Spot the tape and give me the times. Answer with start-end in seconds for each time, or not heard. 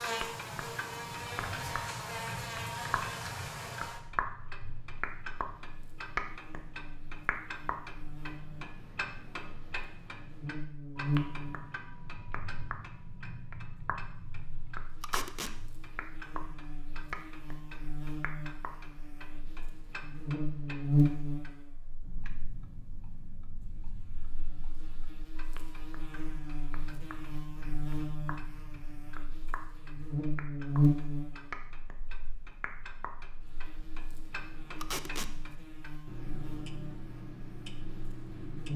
15.0-15.6, 34.8-35.3.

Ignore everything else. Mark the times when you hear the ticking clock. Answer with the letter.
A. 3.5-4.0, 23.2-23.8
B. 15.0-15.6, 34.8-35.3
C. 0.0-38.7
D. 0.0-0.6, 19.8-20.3
C.